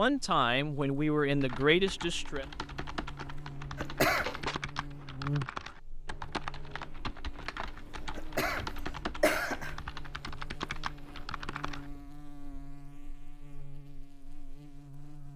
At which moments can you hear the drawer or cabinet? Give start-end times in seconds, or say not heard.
3.9-4.5, 7.8-8.8.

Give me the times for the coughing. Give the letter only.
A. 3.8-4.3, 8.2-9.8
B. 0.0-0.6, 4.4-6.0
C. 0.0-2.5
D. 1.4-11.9
A.